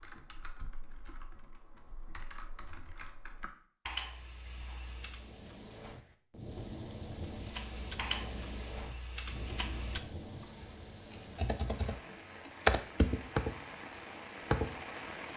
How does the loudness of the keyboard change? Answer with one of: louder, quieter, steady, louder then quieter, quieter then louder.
louder.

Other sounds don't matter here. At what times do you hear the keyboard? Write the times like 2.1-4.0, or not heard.
0.0-5.4, 7.2-15.3.